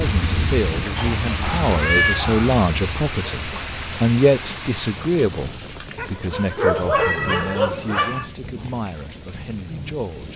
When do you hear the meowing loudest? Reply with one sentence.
The volume of the meowing peaks at 2 seconds.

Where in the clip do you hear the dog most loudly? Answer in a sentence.
The volume of the dog peaks at 7 seconds.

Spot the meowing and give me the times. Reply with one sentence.
The meowing can be heard from 1.6 to 2.2 s and from 7.0 to 7.6 s.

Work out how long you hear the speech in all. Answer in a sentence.
The speech can be heard for 10 seconds in total.